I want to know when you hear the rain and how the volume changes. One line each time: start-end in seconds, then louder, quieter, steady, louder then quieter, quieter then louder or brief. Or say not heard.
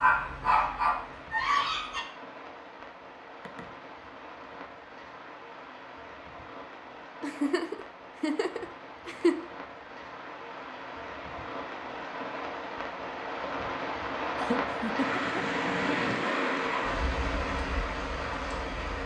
0.0-19.0 louder.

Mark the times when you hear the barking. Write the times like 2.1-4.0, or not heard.
0.0-2.0.